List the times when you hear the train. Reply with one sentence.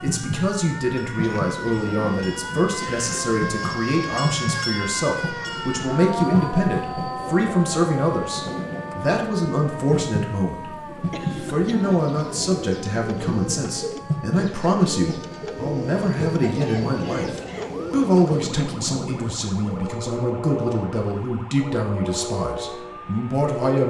The train can be heard from 0.0 to 23.8 s.